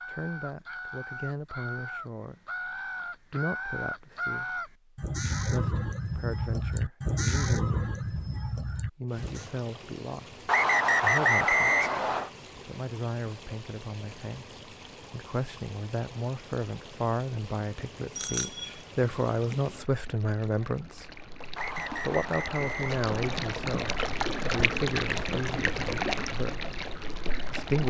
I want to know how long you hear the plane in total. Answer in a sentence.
You can't hear the plane here.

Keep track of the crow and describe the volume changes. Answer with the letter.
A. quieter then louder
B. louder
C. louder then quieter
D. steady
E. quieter
B.